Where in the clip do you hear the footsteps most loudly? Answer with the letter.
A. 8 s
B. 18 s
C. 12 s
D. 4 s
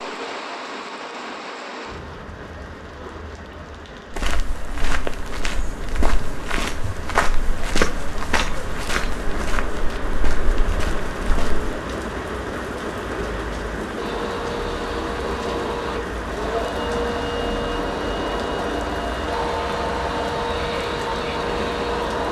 A.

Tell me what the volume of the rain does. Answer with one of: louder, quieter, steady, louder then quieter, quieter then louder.
louder.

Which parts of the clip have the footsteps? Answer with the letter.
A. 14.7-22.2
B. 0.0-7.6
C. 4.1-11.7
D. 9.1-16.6
C.